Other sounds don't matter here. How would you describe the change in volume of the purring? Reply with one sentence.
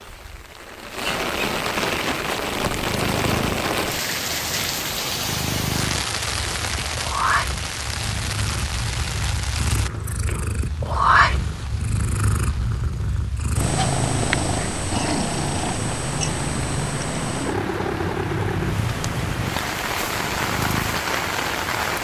The volume of the purring goes up, then down.